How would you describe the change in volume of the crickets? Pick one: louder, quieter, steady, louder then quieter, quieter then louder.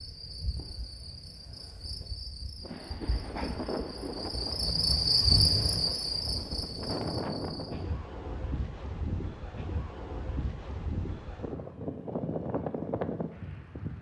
louder then quieter.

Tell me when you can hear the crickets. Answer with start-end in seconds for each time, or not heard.
0.0-7.8.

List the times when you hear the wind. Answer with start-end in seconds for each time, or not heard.
2.6-13.9.